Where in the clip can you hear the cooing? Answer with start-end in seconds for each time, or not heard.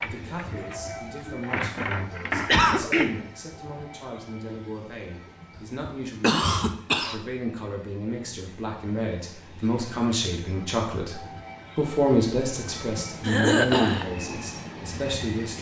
0.0-3.0.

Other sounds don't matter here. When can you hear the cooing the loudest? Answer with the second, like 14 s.
2 s.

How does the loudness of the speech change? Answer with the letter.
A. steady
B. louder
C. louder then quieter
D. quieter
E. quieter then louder
B.